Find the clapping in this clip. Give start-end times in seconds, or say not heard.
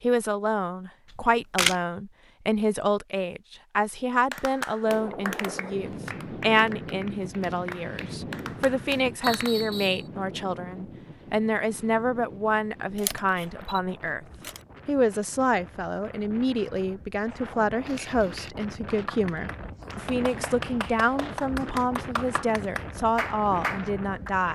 4.3-9.7, 18.9-24.3.